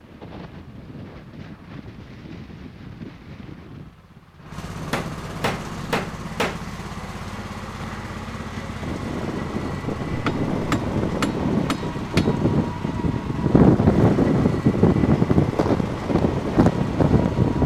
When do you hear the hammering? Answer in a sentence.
You can hear the hammering from 4.9 to 6.6 s and from 10.1 to 12.3 s.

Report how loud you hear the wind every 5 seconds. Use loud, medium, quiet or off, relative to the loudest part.
quiet, quiet, loud, loud.